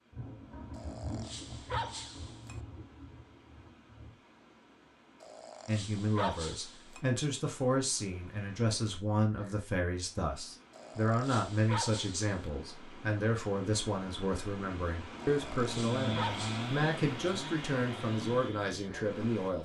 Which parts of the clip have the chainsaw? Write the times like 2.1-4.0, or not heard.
15.8-19.5.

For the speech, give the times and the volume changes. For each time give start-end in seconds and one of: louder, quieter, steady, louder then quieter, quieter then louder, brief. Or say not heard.
5.7-19.5 steady.